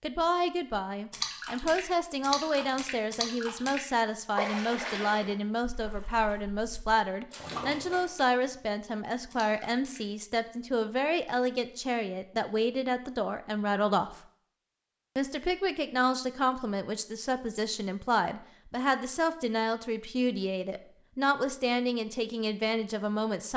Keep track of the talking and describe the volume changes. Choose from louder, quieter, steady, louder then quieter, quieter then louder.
steady.